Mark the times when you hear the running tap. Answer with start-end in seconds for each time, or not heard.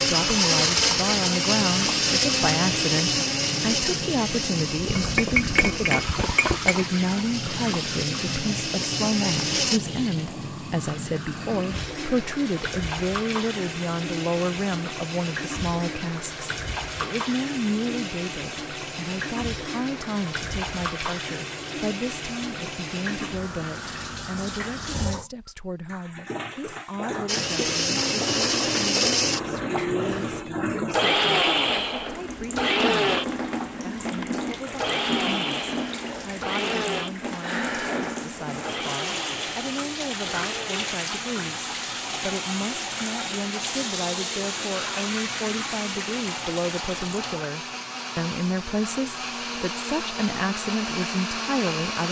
0.0-47.5.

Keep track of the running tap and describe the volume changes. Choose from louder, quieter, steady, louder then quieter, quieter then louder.
steady.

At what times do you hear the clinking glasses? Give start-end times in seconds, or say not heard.
4.8-6.8.